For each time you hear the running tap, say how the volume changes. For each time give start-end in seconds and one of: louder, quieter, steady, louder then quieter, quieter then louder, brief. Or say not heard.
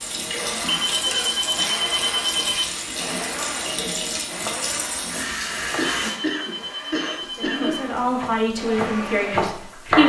0.0-10.0 quieter.